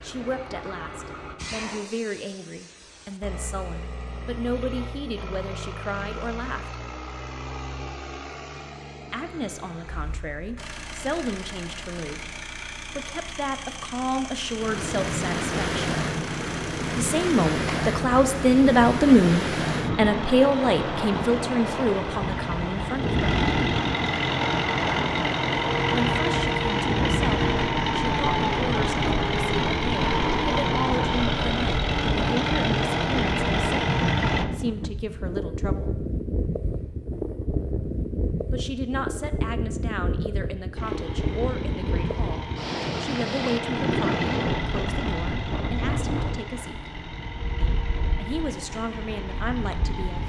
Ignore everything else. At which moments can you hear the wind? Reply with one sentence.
The wind can be heard from 14.6 to 50.2 s.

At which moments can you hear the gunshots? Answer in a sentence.
The gunshots can't be heard in this clip.